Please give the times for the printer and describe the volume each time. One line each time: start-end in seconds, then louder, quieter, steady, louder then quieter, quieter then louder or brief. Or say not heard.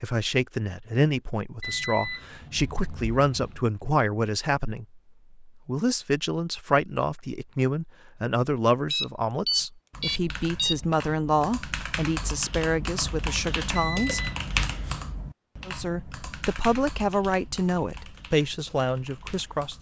not heard.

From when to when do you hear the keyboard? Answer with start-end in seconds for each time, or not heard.
9.6-19.7.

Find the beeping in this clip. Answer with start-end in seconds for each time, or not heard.
1.6-3.6, 8.9-10.8, 13.8-14.4.